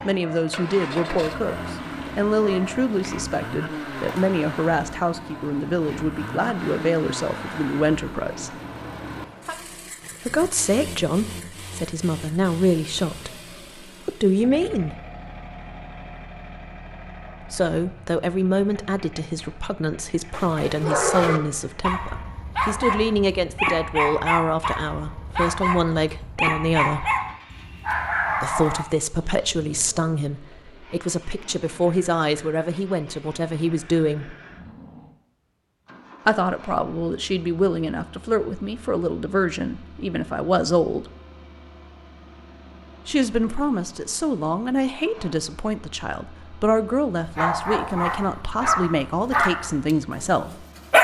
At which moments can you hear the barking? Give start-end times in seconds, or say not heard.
0.0-3.4, 20.3-28.9, 47.3-50.9.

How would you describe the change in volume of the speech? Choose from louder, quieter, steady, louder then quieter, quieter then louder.
steady.